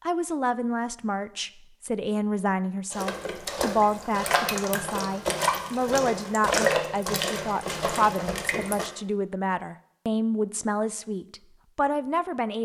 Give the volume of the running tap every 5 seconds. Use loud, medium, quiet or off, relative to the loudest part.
loud, loud, off.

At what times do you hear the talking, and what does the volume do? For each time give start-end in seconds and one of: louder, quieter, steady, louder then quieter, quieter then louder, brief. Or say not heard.
0.0-12.6 steady.